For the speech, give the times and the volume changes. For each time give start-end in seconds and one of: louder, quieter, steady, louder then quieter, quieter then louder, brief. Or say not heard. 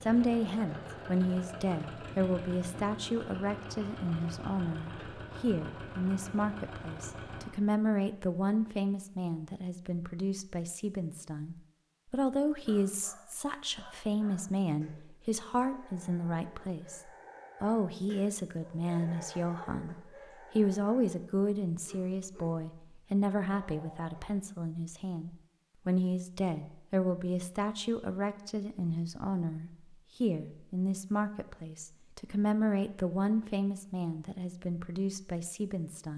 0.0-36.1 steady.